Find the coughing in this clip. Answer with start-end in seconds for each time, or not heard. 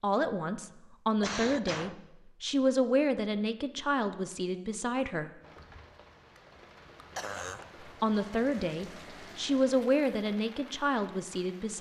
1.2-2.0, 7.2-7.7.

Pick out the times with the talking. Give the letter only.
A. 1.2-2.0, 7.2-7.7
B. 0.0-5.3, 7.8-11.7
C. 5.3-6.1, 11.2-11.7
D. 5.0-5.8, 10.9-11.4
B.